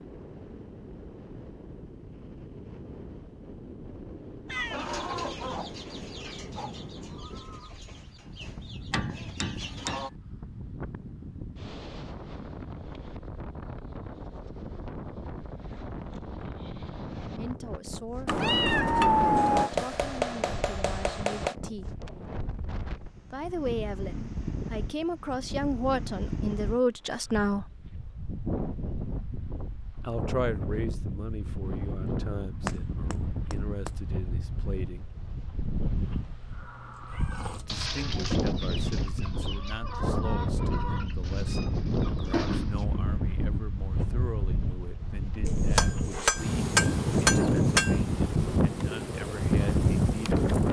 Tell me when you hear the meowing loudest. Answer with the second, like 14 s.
19 s.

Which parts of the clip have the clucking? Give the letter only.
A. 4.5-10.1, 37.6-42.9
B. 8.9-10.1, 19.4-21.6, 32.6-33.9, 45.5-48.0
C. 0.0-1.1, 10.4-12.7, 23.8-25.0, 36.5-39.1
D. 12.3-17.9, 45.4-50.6
A.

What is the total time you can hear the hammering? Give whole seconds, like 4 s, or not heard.
7 s.